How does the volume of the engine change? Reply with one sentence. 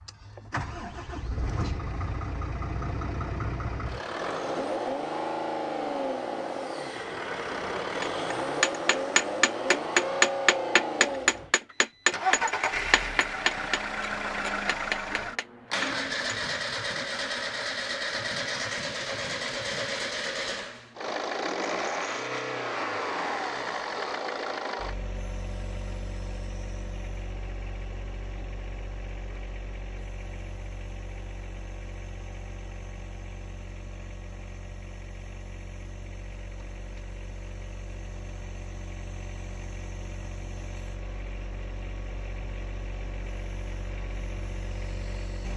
The volume of the engine goes down.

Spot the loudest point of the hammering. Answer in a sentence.
The loudest moment of the hammering is at 10 seconds.